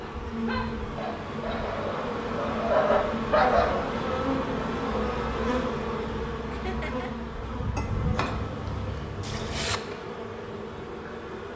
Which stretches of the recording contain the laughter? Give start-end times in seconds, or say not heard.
6.5-7.1.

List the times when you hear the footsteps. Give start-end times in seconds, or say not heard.
not heard.